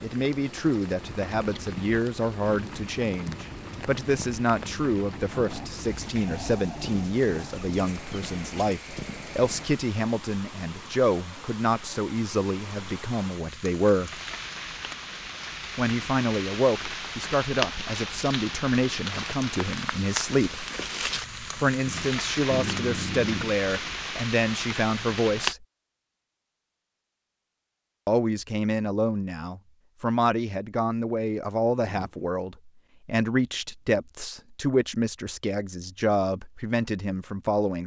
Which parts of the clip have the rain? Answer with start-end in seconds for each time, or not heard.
0.0-25.6.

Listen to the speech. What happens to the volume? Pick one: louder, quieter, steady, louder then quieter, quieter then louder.
steady.